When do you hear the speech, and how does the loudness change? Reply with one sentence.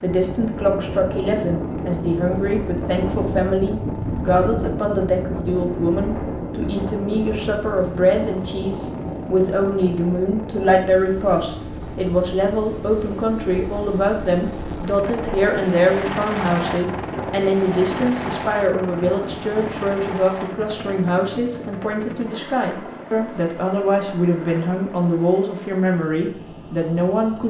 The speech can be heard from 0.0 to 27.4 s, at a steady volume.